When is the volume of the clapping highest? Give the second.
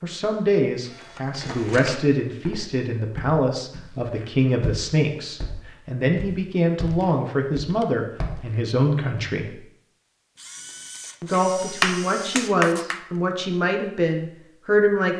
12 s.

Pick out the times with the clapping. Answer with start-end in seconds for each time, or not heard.
10.5-13.0.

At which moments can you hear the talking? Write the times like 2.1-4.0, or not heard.
0.0-9.6, 11.2-15.1.